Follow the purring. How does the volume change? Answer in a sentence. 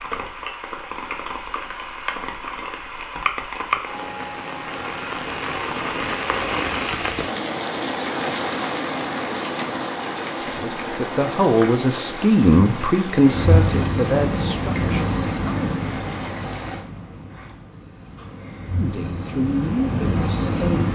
The loudness of the purring goes down, then up.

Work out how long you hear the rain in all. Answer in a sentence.
The rain can be heard for 17 seconds in total.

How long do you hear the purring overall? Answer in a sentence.
You can hear the purring for 8 seconds altogether.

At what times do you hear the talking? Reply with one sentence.
You can hear the talking from 10.4 to 15.8 s and from 18.8 to 20.8 s.